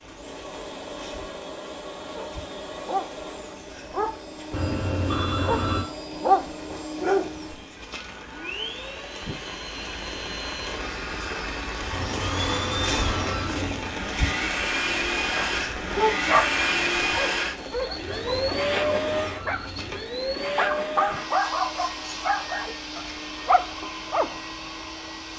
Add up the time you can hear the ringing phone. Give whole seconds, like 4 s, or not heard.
5 s.